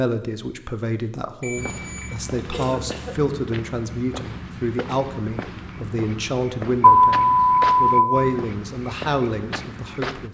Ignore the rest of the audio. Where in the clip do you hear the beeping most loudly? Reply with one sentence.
The volume of the beeping peaks at 7 seconds.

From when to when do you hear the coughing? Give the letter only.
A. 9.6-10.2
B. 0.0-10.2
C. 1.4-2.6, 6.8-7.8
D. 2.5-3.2
D.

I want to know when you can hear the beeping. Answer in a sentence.
The beeping can be heard from 1.4 to 2.6 s and from 6.8 to 7.8 s.